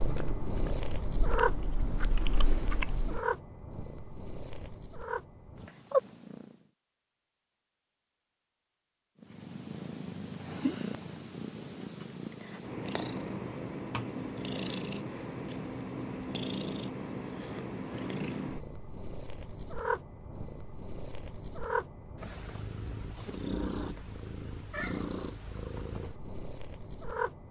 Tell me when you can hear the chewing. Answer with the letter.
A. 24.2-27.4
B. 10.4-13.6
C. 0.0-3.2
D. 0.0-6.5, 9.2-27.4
C.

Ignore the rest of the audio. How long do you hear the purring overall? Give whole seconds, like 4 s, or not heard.
25 s.